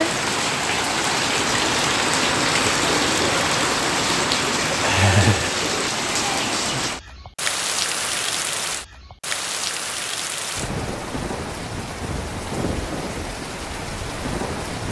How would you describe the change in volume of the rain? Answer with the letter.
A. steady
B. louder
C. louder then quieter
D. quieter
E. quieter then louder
D.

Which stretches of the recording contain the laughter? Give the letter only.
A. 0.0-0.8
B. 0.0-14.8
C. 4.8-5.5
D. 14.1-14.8
C.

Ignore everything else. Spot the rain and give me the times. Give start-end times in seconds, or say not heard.
0.0-14.8.